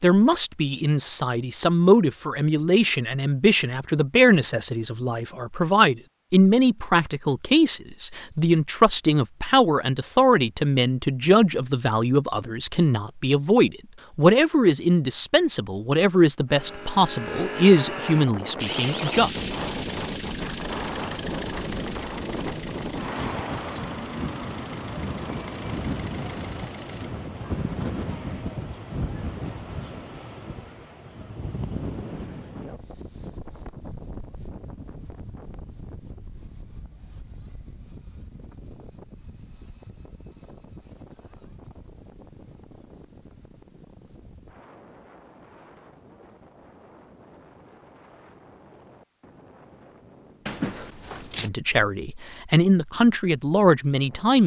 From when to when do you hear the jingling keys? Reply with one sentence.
You can hear the jingling keys from 50.5 to 51.5 s.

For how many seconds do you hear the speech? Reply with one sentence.
The speech can be heard for 22 seconds in total.